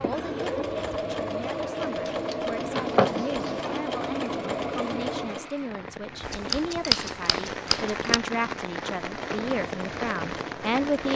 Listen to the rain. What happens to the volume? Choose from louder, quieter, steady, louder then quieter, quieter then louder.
louder.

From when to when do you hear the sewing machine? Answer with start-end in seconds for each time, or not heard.
0.0-5.5, 9.1-11.1.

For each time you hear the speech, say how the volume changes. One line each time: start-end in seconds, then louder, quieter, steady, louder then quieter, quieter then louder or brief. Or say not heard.
0.0-11.1 louder.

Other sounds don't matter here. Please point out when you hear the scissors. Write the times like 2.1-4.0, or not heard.
2.0-3.8, 6.2-8.2.